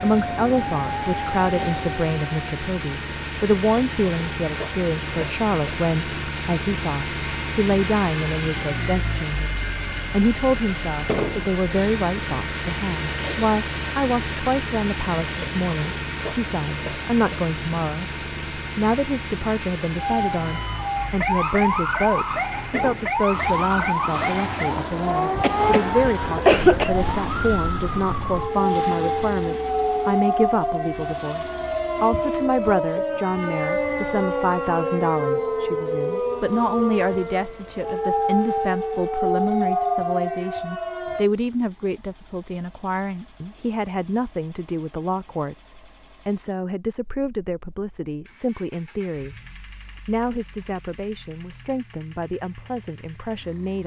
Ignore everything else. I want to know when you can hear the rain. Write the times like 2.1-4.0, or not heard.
not heard.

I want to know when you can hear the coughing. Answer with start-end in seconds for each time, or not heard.
25.4-26.9.